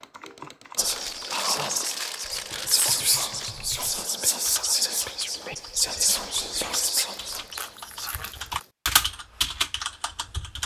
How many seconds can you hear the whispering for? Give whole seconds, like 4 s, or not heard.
7 s.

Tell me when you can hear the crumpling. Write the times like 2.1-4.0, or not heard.
0.8-3.5, 7.1-8.7.